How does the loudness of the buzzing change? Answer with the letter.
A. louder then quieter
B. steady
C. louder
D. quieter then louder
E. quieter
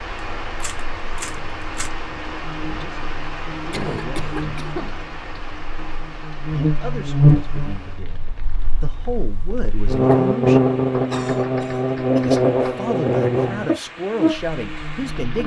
C.